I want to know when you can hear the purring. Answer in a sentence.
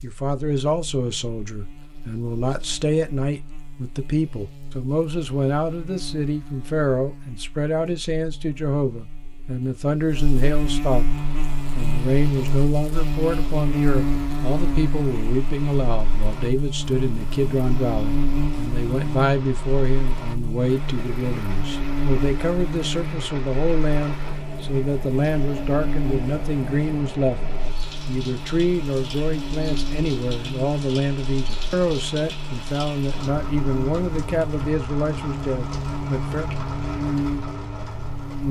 You can't hear the purring here.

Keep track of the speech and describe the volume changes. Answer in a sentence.
The loudness of the speech stays about the same.